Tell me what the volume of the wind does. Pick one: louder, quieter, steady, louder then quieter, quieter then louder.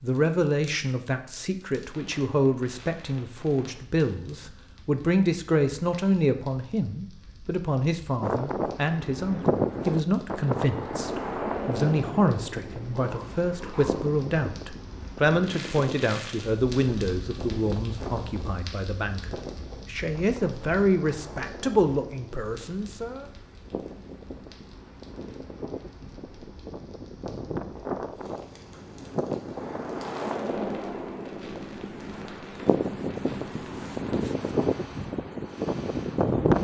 quieter then louder.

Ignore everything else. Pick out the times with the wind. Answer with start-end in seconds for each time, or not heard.
8.2-36.5.